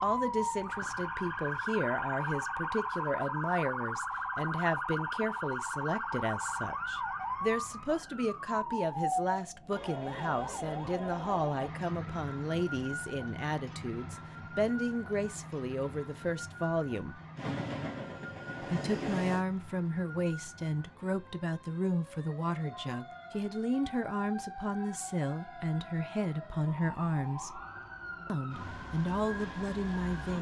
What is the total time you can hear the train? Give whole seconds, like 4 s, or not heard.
2 s.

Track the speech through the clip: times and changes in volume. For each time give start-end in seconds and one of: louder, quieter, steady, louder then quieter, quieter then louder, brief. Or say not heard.
0.0-17.2 steady
18.6-27.6 steady
28.2-30.3 brief.